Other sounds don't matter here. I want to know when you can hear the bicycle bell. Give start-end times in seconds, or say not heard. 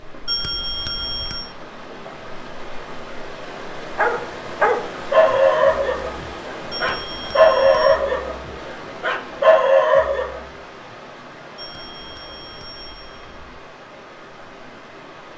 0.2-1.5, 6.7-8.0, 11.6-13.4.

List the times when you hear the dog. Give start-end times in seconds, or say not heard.
4.0-10.4.